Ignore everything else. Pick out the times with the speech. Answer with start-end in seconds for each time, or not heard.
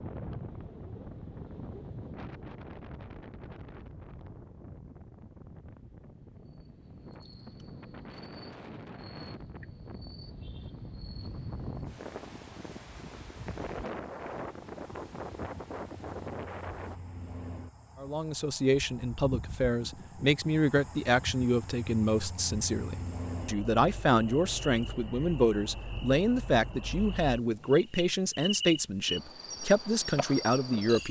18.0-31.0.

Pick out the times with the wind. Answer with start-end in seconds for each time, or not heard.
0.0-17.0.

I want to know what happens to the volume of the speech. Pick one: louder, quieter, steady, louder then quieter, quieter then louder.
steady.